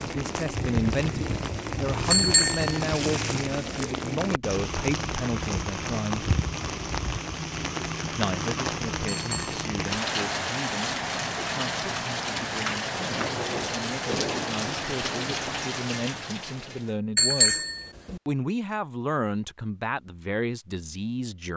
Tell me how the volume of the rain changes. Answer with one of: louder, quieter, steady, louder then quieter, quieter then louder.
steady.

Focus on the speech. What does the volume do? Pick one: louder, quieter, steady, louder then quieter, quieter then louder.
quieter then louder.